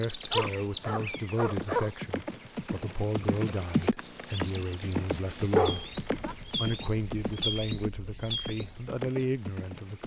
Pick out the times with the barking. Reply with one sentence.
You can hear the barking from 0.3 to 1.9 s and from 5.3 to 6.3 s.